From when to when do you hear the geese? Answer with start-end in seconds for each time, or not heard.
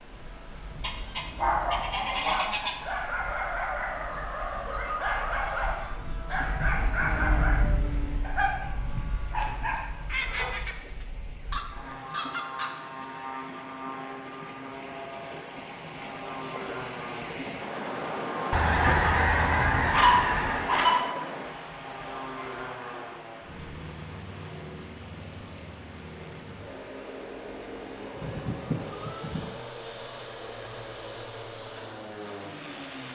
0.8-2.9, 10.1-12.7, 18.5-20.7, 28.1-29.6.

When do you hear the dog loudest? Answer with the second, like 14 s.
20 s.